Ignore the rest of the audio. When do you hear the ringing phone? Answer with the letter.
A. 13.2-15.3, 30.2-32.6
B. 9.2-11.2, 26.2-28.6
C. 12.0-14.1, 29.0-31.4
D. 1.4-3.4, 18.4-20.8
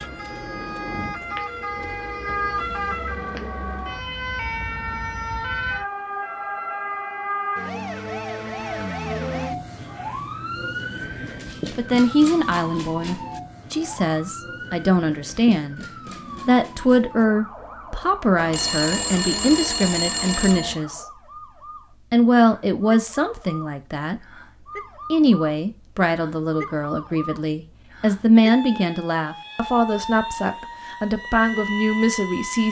D.